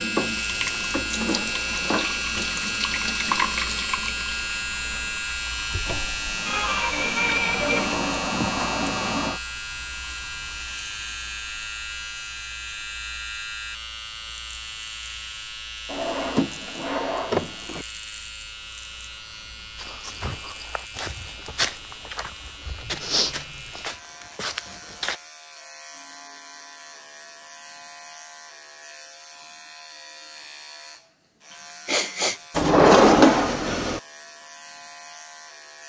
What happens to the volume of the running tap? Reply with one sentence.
The loudness of the running tap goes down, then up.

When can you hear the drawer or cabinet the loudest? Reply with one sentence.
The loudest moment of the drawer or cabinet is at 33 seconds.